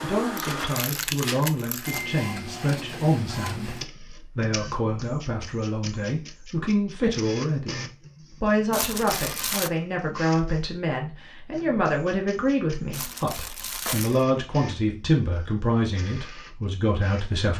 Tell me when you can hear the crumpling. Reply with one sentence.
The crumpling can be heard from 0.3 to 2.0 s, from 8.7 to 9.7 s and from 12.9 to 14.2 s.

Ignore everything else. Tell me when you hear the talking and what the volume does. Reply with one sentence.
The talking can be heard from 0.0 to 17.5 s, at a steady volume.